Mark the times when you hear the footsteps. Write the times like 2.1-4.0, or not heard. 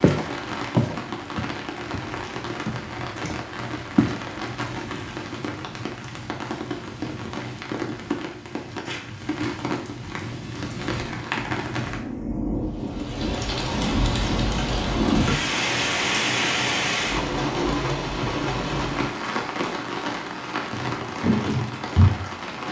0.0-4.2, 20.7-22.1.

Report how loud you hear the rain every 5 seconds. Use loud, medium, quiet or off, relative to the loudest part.
medium, medium, loud, loud, medium.